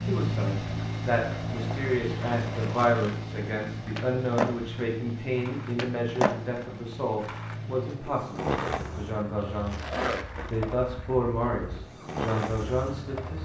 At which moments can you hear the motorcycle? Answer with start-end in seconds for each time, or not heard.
0.0-13.4.